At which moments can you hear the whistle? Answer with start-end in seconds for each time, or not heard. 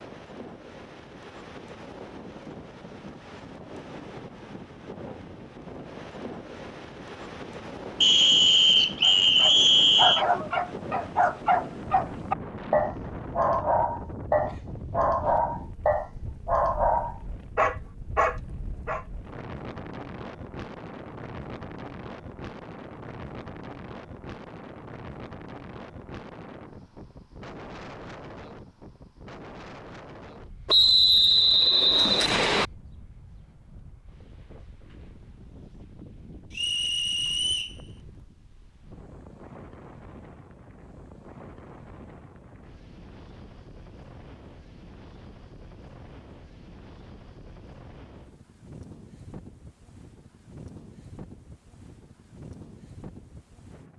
8.0-10.2, 30.6-32.6, 36.5-37.8.